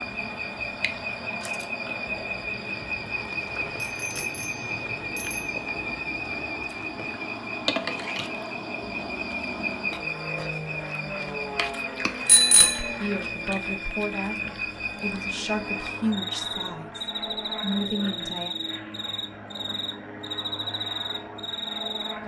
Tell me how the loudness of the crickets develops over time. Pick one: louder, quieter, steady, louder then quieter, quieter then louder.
steady.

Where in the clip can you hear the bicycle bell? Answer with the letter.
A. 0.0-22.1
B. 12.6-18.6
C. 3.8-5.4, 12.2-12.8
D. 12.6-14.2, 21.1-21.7
C.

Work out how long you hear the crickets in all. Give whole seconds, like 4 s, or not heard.
22 s.